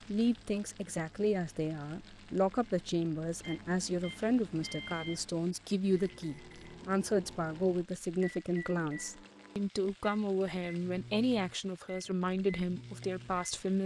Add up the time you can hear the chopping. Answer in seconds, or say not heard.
not heard.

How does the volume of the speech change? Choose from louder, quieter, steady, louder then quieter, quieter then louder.
steady.